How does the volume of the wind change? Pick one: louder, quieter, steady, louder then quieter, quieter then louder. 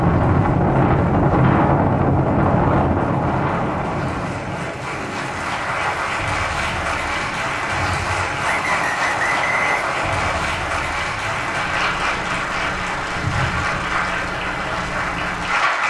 quieter.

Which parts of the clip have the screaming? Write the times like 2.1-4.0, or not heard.
not heard.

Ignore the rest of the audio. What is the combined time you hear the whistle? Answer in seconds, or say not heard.
2 s.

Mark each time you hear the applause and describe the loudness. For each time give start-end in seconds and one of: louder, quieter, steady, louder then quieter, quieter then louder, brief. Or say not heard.
0.0-15.8 louder.